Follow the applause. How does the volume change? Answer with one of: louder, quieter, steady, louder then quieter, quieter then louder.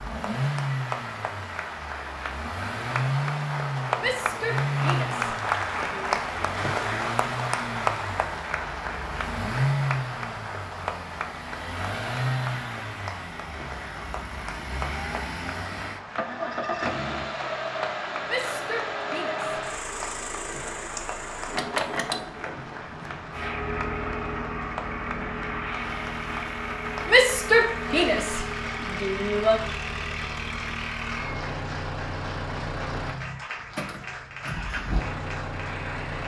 quieter.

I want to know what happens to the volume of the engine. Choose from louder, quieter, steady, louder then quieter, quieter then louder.
steady.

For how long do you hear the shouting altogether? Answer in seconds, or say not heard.
6 s.